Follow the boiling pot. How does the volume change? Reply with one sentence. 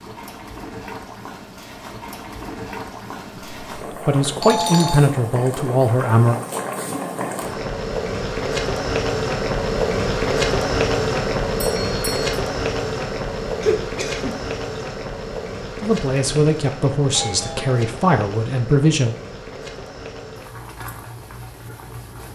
The loudness of the boiling pot goes up, then down.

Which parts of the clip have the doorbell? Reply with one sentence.
You can hear the doorbell from 4.4 to 5.0 s, from 11.6 to 12.3 s and from 17.1 to 17.9 s.